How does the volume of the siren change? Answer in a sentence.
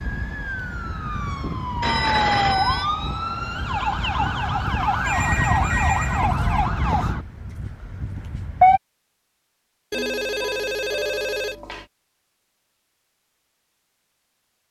The loudness of the siren goes up, then down.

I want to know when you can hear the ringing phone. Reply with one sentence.
You can hear the ringing phone from 1.8 to 2.9 s, from 5.0 to 6.6 s and from 9.9 to 11.8 s.